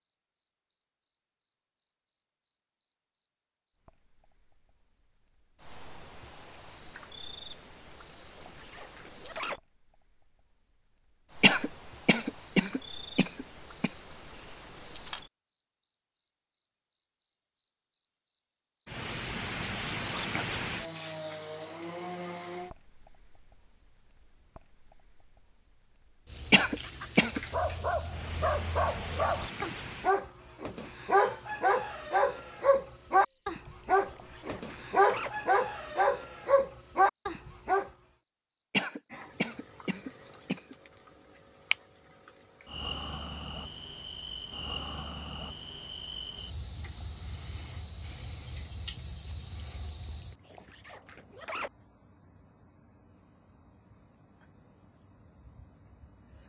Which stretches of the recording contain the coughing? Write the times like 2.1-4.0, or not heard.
11.4-13.9, 26.5-27.4, 38.7-40.8.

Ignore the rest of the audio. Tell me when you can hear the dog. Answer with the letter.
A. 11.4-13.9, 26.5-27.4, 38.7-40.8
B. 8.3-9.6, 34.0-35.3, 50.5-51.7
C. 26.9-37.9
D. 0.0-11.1
C.